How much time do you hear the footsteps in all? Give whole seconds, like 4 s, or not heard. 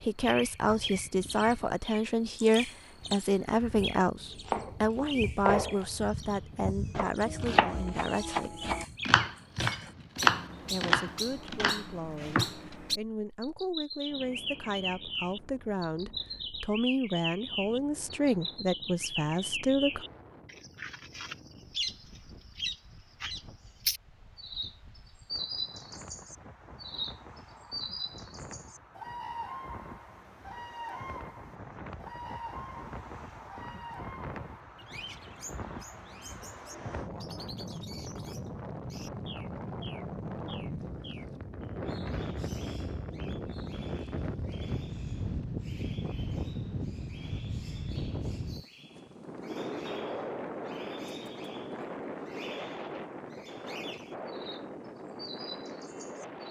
not heard.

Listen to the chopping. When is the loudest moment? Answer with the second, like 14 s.
10 s.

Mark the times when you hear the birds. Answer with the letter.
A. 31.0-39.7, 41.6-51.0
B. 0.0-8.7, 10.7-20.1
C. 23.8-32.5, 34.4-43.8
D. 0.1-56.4
D.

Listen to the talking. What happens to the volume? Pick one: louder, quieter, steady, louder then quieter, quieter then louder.
quieter then louder.